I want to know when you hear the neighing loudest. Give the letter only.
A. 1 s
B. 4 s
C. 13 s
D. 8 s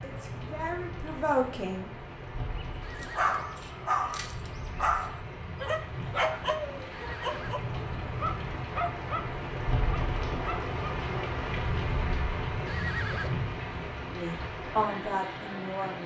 C.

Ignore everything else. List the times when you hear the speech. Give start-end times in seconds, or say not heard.
0.0-1.9, 14.1-16.0.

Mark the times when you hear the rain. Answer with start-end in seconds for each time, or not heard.
0.0-16.0.